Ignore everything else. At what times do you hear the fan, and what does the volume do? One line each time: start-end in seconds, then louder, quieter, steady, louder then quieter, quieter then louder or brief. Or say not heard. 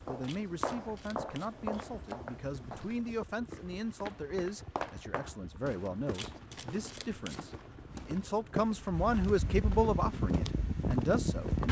0.0-11.6 louder.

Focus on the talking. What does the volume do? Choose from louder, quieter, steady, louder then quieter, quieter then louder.
louder.